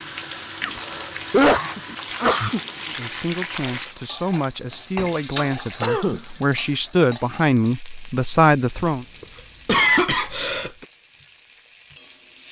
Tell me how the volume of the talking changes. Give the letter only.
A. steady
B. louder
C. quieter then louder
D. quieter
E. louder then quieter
B.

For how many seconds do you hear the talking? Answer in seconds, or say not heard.
6 s.